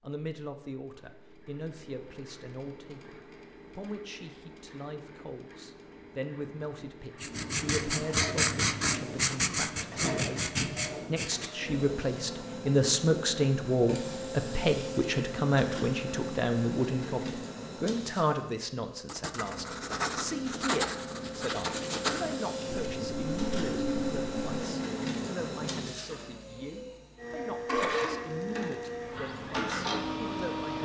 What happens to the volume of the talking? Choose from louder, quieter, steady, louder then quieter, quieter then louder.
louder then quieter.